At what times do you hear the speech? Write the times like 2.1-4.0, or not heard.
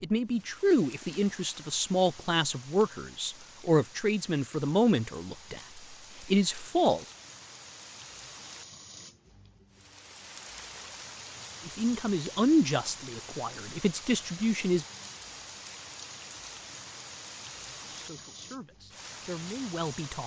0.0-7.0, 11.7-14.8, 17.9-20.2.